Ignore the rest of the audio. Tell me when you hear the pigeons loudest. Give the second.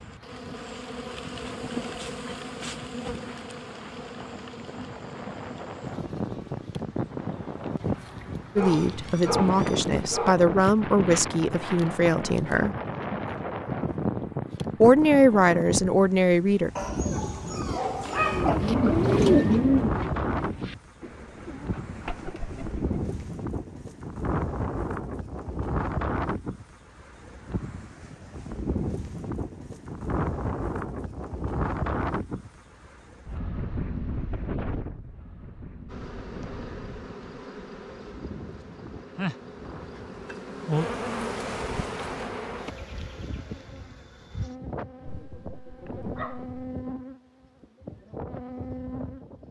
19 s.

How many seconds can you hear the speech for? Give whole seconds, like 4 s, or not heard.
6 s.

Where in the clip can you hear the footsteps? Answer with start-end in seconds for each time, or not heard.
not heard.